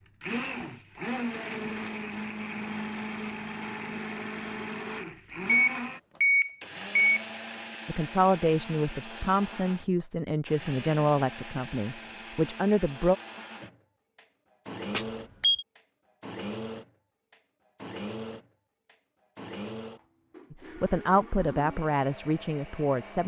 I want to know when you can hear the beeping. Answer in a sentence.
The beeping can be heard from 5.5 to 7.2 s and from 14.9 to 15.7 s.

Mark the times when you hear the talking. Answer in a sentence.
You can hear the talking from 7.8 to 13.2 s and from 20.5 to 23.2 s.